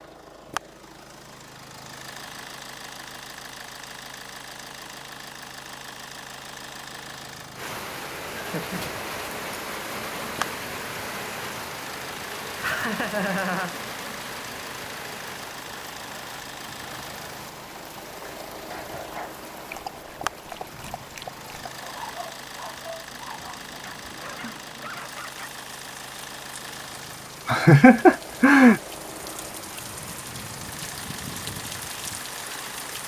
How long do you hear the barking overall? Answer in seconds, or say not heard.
7 s.